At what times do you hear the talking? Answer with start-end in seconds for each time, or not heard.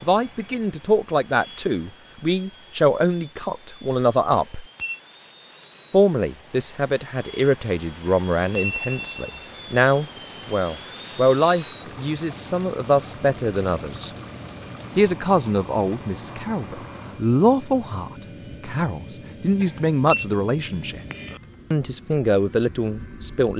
0.0-4.7, 5.9-14.1, 14.9-21.0, 21.7-23.5.